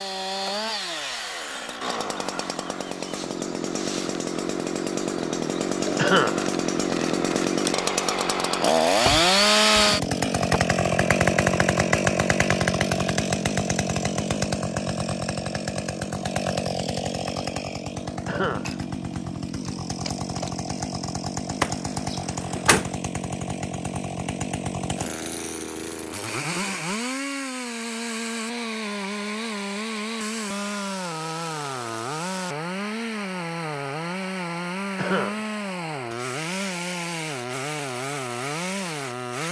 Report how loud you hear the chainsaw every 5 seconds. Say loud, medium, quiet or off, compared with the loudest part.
medium, loud, loud, medium, medium, medium, medium, medium.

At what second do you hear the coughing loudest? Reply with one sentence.
The loudest moment of the coughing is at 6 seconds.